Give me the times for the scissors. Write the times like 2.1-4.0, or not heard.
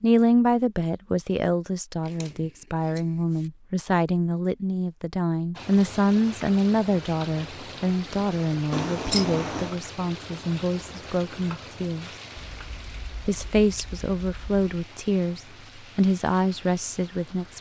2.0-3.5, 8.7-9.8, 12.4-14.6.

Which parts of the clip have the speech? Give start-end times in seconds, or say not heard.
0.0-12.1, 13.2-17.5.